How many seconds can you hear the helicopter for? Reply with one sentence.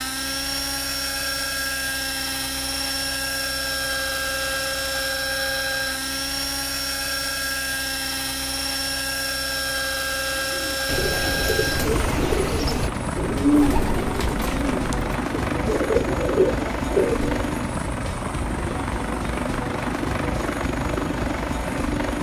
You can hear the helicopter for 22 seconds altogether.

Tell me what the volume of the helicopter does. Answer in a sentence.
The loudness of the helicopter stays about the same.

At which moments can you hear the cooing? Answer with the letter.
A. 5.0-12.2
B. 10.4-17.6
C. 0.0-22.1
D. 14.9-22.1
B.